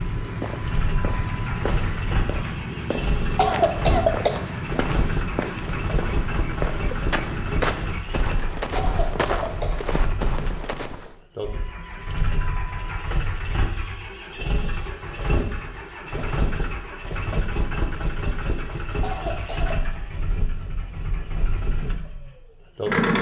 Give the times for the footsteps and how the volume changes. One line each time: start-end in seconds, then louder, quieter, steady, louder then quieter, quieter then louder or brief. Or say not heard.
0.0-11.2 steady.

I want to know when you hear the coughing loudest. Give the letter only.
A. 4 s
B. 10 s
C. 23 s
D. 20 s
A.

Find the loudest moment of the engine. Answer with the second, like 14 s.
23 s.